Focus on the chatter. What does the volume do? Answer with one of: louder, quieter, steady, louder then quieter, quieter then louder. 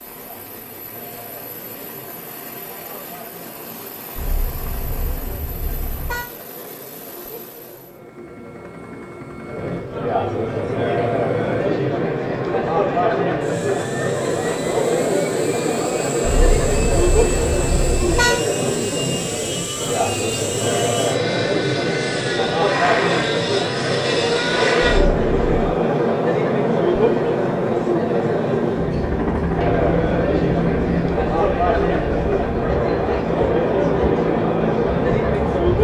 louder.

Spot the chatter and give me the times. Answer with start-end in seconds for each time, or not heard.
0.0-35.7.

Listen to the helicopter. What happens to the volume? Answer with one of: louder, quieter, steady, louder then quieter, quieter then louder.
louder.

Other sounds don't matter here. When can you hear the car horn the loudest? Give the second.
18 s.